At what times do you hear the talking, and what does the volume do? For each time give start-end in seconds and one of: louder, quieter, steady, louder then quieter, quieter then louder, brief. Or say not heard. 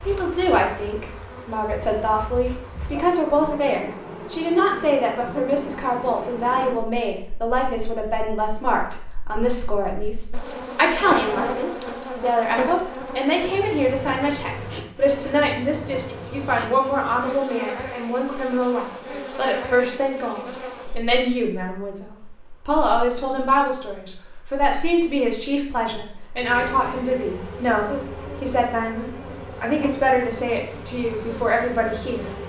0.0-32.3 steady.